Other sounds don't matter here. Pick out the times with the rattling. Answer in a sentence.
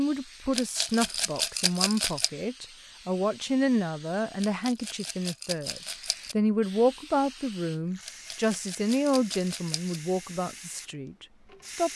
You can hear the rattling from 0.5 to 2.3 s, from 4.4 to 6.3 s and from 8.1 to 10.0 s.